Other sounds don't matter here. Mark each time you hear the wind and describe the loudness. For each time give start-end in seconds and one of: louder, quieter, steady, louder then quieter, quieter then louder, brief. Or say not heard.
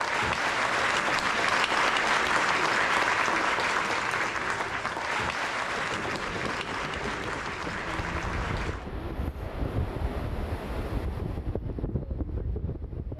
5.6-13.1 steady.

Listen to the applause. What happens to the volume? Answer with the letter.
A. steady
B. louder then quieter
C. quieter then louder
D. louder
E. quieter
E.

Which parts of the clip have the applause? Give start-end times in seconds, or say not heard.
0.0-8.9.